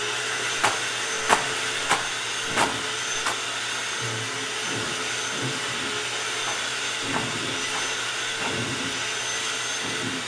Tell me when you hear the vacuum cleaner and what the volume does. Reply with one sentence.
The vacuum cleaner can be heard from 0.0 to 10.2 s, at a steady volume.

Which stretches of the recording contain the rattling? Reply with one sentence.
You can hear the rattling from 0.6 to 3.4 s and from 6.4 to 8.6 s.